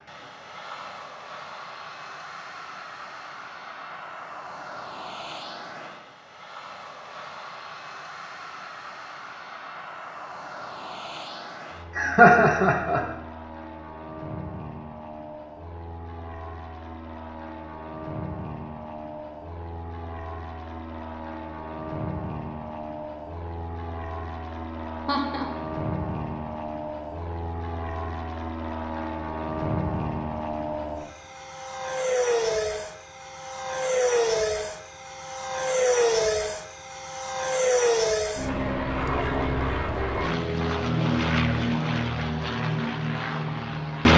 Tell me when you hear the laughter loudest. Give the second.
12 s.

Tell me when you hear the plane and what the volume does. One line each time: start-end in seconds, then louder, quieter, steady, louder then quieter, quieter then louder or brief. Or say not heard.
0.0-44.1 louder.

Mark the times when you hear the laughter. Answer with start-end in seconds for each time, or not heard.
11.9-13.0, 25.1-25.5.